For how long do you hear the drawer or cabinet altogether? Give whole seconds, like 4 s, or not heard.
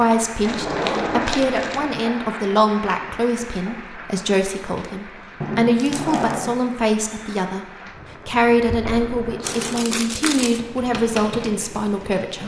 3 s.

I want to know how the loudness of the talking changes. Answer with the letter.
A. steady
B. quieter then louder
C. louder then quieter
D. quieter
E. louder
A.